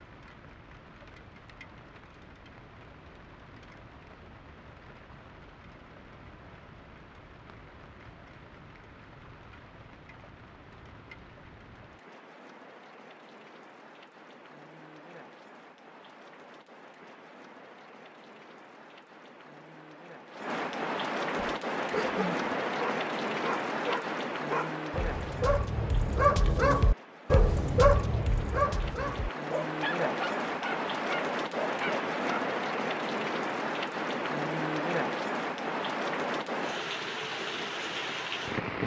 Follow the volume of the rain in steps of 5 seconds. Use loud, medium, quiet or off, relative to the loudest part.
quiet, quiet, quiet, quiet, loud, medium, loud, loud.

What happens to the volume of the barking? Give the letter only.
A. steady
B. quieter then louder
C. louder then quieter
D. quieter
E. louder
C.